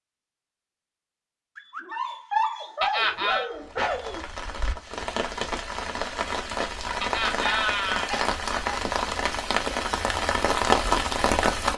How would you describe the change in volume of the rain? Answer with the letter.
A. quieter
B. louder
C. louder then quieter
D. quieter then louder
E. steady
B.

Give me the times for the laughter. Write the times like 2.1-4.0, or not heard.
2.8-3.5, 7.0-8.1.